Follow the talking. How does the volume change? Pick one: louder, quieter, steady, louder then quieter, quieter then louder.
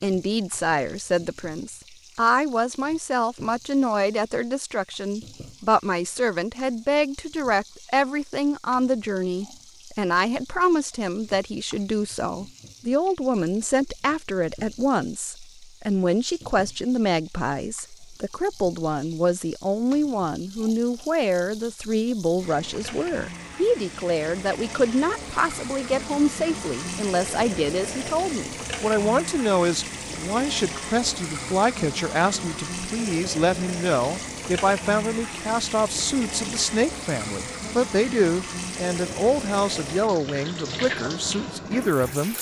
steady.